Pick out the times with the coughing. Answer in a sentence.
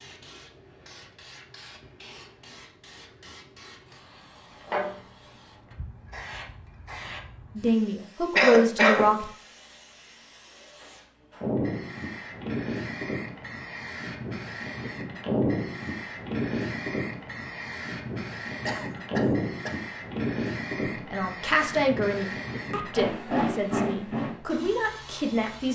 You can hear the coughing from 8.3 to 9.1 s and from 18.6 to 19.8 s.